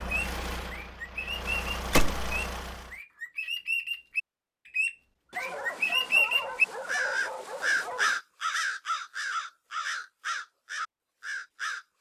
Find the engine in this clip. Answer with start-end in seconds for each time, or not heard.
0.0-3.0.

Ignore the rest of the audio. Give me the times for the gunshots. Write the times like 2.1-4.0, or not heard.
1.9-2.4.